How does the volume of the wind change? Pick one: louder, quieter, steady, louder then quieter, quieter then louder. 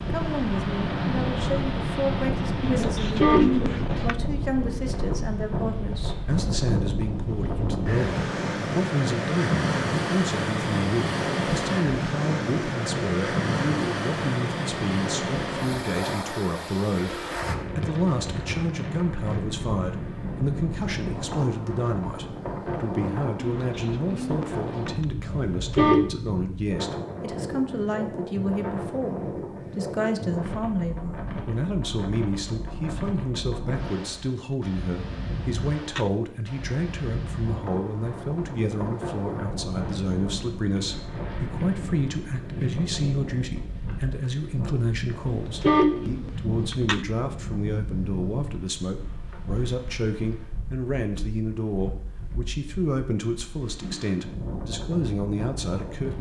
quieter.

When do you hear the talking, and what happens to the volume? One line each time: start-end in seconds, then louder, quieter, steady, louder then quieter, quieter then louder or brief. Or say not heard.
0.1-56.1 steady.